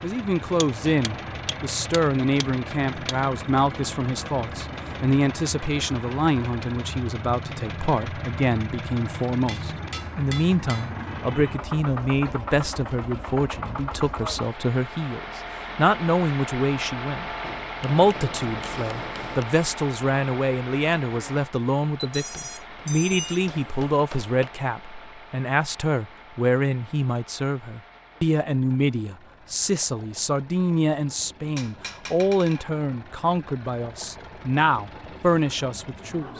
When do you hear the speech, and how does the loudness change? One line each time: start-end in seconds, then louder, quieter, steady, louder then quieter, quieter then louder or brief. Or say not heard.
0.0-36.3 steady.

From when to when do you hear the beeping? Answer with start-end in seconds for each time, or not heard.
21.9-23.4.